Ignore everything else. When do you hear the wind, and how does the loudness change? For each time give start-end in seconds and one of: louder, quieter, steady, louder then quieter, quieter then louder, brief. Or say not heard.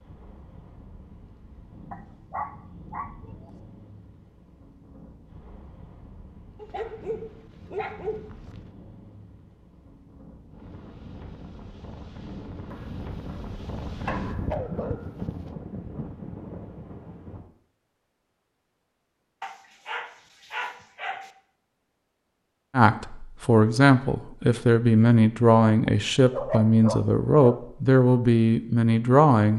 0.0-17.4 louder.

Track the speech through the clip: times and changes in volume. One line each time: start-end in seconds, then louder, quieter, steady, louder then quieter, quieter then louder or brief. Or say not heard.
22.7-29.5 steady.